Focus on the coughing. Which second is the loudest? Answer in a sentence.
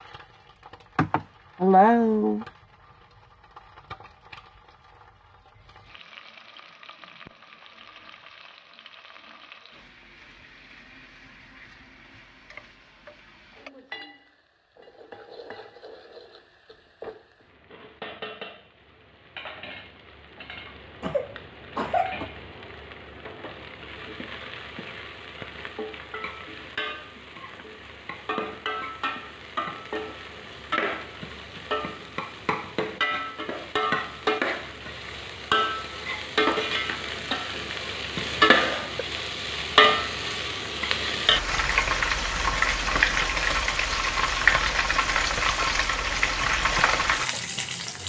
The loudest moment of the coughing is at 2 seconds.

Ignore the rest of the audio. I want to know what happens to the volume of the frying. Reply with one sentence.
The volume of the frying goes up.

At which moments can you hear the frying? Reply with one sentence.
You can hear the frying from 0.0 to 48.0 s.